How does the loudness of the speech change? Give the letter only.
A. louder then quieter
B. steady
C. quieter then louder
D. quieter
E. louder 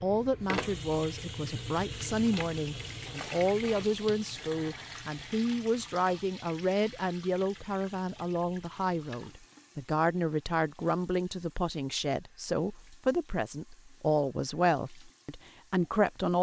B.